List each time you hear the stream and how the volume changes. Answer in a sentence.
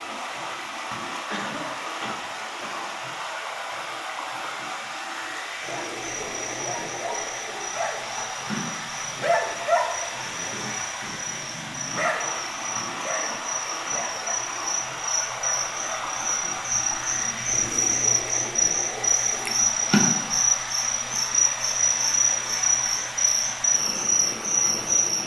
You can hear the stream from 0.0 to 25.2 s, at a steady volume.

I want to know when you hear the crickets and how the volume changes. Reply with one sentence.
The crickets can be heard from 5.7 to 25.2 s, getting louder.